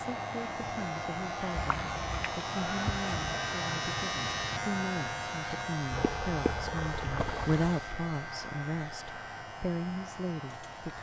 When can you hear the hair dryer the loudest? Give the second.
3 s.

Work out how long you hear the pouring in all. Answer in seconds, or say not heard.
3 s.